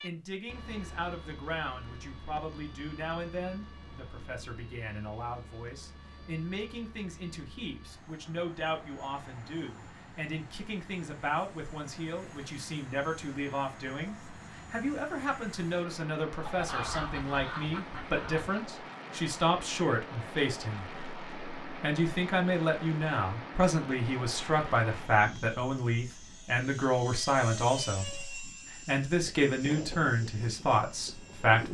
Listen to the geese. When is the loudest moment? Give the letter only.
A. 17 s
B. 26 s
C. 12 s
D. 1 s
A.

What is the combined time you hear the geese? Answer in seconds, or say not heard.
2 s.